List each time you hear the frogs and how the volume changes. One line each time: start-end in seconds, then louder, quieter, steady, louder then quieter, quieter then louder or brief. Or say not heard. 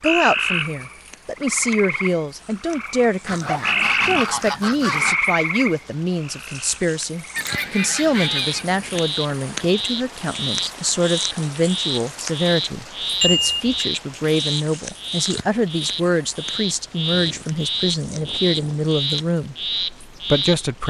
0.0-20.8 steady.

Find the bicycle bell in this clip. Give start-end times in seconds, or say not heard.
13.2-13.8.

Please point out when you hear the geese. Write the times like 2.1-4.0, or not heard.
3.2-5.2, 7.3-9.0, 17.1-18.9.